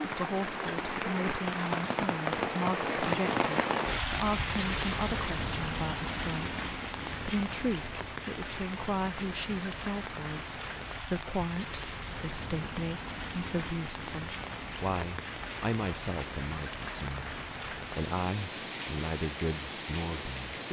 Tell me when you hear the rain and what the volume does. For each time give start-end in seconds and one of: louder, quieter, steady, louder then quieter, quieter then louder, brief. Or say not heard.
0.0-20.6 quieter.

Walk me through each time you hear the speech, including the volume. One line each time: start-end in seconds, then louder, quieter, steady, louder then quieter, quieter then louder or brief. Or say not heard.
0.0-20.6 steady.